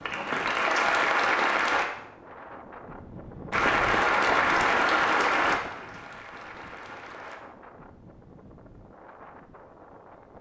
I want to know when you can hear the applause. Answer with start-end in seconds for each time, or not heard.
0.0-1.9, 3.5-7.4.